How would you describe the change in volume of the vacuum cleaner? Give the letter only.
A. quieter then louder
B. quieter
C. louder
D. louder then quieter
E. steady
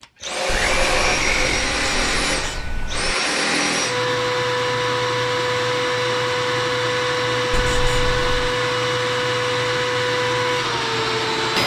E.